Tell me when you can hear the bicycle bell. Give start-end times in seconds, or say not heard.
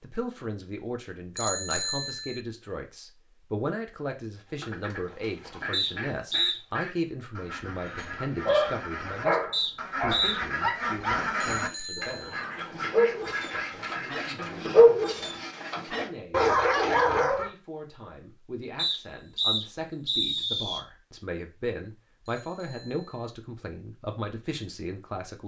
1.4-2.4, 11.4-12.4, 22.2-23.3.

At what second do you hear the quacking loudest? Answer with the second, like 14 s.
11 s.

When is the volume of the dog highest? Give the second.
15 s.